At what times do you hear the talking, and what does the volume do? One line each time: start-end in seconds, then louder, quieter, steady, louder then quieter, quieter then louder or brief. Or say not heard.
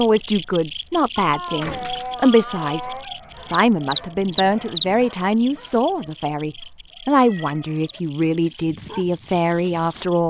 0.0-10.2 steady.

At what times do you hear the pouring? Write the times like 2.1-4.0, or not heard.
not heard.